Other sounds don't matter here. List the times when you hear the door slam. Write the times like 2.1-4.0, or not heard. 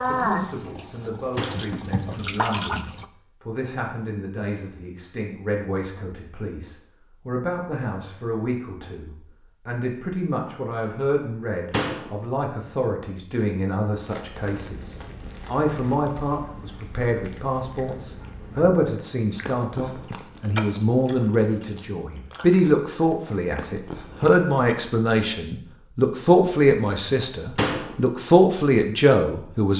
1.4-1.8, 11.7-12.2, 27.6-28.0.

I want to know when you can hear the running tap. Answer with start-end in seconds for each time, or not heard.
0.0-3.0.